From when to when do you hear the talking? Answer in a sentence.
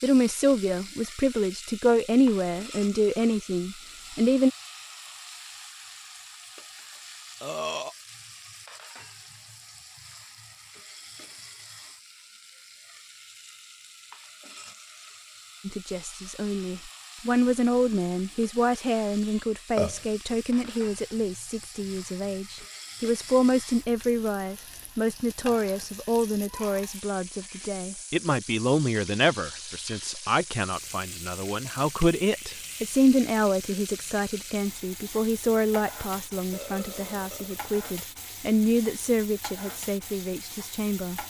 You can hear the talking from 0.0 to 4.5 s and from 15.7 to 41.2 s.